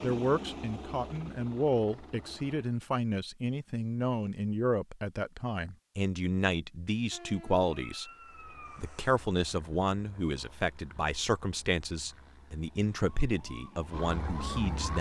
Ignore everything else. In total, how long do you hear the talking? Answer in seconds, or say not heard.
14 s.